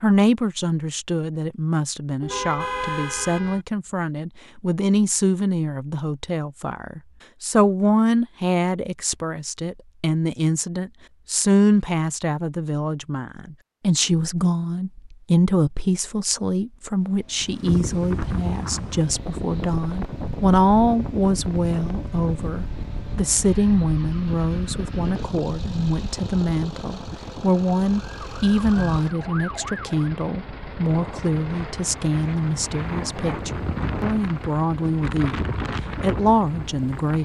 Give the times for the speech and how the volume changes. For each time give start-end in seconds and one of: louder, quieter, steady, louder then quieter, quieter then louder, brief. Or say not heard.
0.0-37.2 steady.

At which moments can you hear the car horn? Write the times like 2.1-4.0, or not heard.
2.2-3.6.